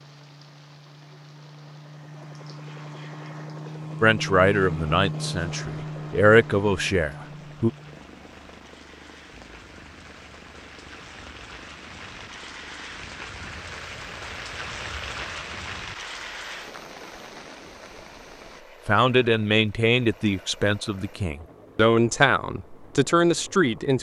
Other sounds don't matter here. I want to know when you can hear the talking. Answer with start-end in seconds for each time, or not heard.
4.0-7.7, 18.9-23.9.